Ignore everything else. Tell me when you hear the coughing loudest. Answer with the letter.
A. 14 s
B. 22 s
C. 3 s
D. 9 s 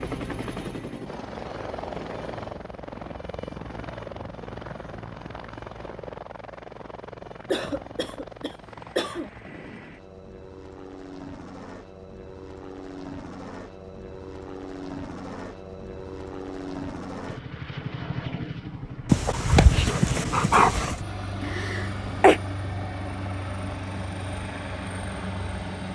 B.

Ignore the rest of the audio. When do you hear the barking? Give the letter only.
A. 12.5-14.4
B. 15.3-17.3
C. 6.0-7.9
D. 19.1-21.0
D.